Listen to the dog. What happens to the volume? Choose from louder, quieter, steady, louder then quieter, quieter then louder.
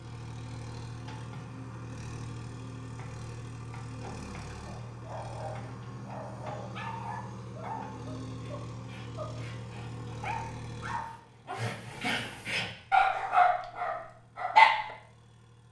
louder.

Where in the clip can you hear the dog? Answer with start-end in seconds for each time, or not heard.
4.7-14.9.